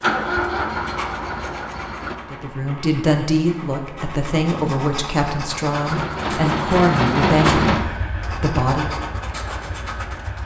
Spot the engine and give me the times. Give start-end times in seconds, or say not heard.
0.0-2.1, 5.8-10.4.